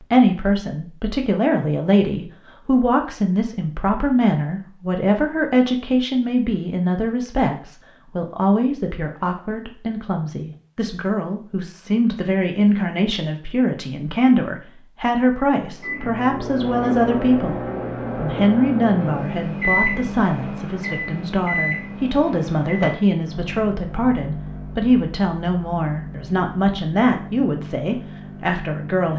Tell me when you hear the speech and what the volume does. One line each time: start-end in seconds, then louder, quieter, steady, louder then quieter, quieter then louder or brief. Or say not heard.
0.0-29.1 steady.